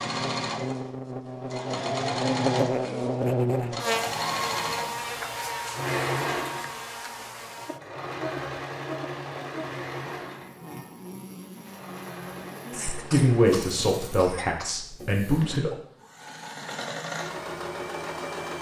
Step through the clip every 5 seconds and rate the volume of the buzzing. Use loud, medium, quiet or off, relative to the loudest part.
loud, medium, quiet, off.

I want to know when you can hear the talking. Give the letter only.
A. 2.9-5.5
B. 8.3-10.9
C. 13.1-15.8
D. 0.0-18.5
C.